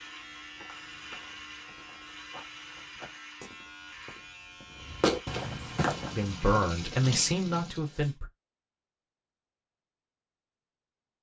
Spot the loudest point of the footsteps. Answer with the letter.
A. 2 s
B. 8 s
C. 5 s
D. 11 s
C.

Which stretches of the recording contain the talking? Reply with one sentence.
You can hear the talking from 6.2 to 8.3 s.